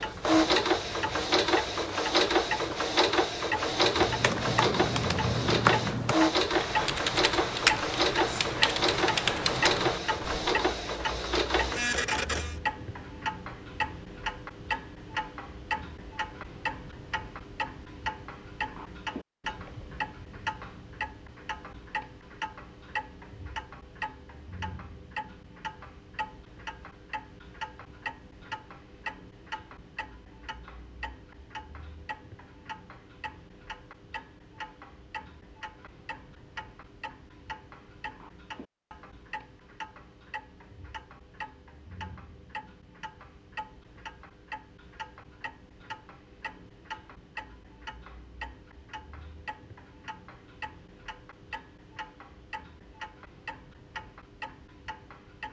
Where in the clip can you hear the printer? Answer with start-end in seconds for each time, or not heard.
0.0-12.6.